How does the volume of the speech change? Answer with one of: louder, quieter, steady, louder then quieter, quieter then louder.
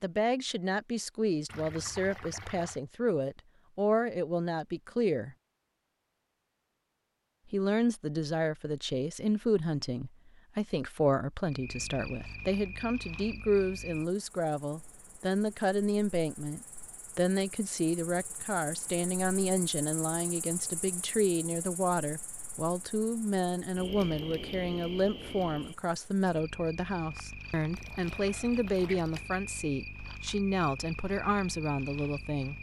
steady.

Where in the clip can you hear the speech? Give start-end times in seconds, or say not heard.
0.0-5.3, 7.5-32.5.